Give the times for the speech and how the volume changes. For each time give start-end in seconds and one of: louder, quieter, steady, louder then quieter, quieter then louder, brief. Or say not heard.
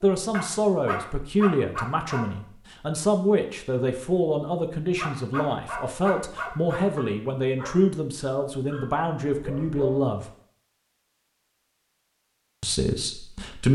0.0-10.2 steady
12.6-13.7 brief.